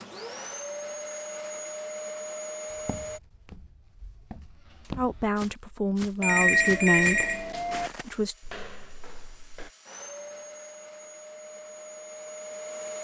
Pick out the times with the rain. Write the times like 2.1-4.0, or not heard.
not heard.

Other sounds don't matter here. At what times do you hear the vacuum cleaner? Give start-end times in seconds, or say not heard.
0.0-3.2, 8.0-12.9.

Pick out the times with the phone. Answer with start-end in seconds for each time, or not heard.
6.2-7.9.